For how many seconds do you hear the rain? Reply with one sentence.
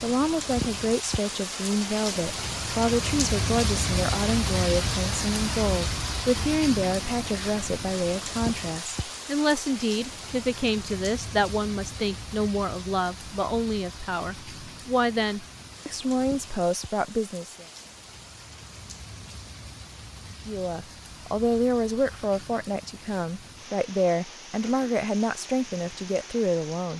The rain can be heard for 27 seconds in total.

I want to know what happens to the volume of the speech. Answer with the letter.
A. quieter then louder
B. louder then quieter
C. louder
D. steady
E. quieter
D.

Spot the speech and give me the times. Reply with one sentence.
You can hear the speech from 0.0 to 17.6 s and from 20.4 to 26.9 s.